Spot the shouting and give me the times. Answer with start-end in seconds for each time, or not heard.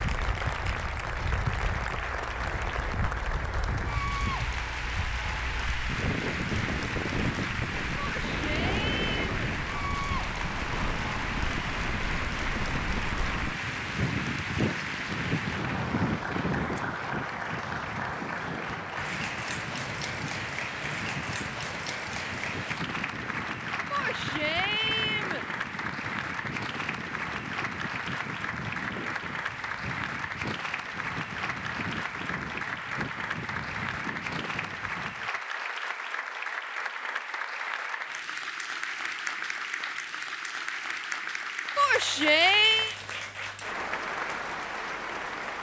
8.0-9.2, 23.9-25.4, 41.8-43.0.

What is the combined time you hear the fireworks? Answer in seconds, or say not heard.
not heard.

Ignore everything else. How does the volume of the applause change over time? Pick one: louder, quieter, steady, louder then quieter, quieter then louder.
steady.